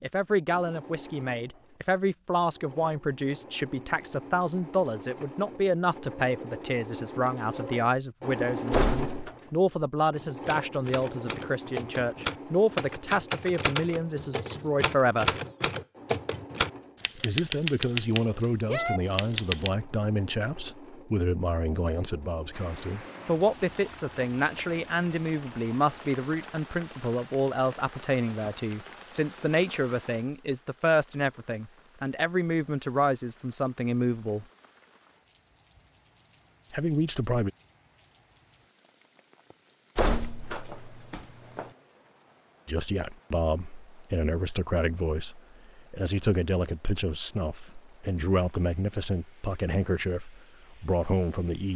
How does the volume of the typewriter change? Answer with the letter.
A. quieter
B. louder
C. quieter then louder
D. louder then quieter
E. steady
B.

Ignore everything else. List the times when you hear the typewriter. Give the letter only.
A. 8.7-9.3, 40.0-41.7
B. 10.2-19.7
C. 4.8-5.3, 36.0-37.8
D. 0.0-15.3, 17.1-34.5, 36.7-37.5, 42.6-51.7
B.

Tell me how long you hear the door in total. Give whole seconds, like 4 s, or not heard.
2 s.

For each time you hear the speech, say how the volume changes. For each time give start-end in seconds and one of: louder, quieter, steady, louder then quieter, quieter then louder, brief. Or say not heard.
0.0-15.3 steady
17.1-34.5 steady
36.7-37.5 brief
42.6-51.7 steady.